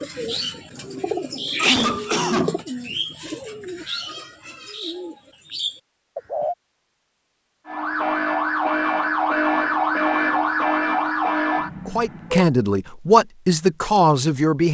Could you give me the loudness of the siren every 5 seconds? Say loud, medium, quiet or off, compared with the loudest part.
off, loud, loud.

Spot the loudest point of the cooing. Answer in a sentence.
The loudest moment of the cooing is at 2 seconds.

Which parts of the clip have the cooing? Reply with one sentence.
The cooing can be heard from 0.0 to 6.5 s.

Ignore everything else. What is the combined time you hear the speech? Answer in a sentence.
The speech can be heard for 3 seconds in total.